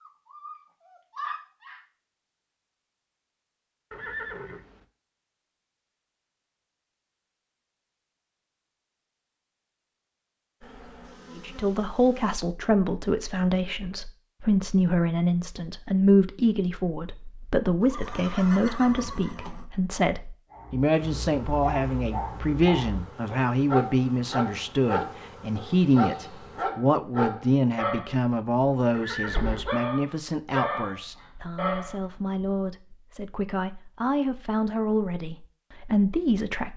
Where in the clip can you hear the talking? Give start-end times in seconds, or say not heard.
11.3-36.7.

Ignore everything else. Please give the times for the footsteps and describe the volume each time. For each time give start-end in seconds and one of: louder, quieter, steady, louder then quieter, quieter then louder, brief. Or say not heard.
not heard.